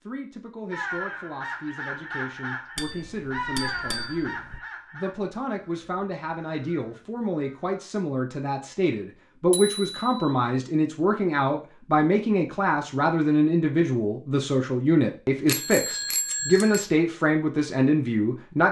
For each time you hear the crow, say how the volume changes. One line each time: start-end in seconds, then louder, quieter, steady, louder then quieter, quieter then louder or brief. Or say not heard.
0.7-7.8 quieter.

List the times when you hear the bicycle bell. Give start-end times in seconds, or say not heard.
2.8-4.6, 9.5-10.1, 15.4-16.9.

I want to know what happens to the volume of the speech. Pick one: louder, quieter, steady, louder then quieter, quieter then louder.
louder.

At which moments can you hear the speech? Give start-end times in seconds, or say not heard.
0.0-18.6.